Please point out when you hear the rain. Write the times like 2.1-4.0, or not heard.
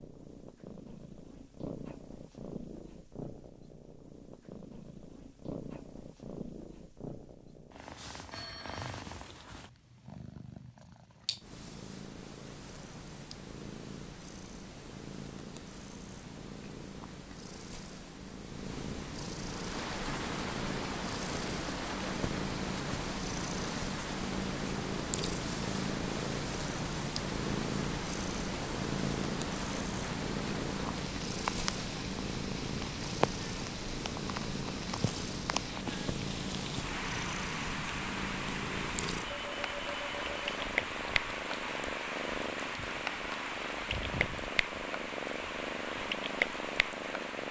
19.4-47.4.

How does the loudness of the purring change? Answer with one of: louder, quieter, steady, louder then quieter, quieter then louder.
louder.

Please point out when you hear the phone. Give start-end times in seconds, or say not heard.
8.3-9.1, 39.2-40.6.